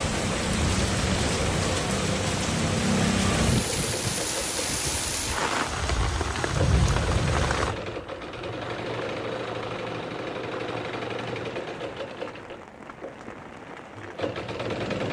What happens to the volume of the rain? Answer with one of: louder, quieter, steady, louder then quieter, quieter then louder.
quieter.